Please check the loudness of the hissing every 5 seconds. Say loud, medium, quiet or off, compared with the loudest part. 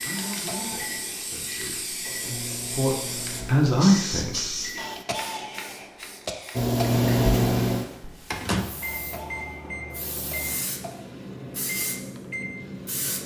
loud, medium, loud.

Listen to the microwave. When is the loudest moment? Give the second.
7 s.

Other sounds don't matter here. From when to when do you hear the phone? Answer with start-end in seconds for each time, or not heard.
not heard.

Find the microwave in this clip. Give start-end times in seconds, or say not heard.
0.0-5.0, 6.5-13.1.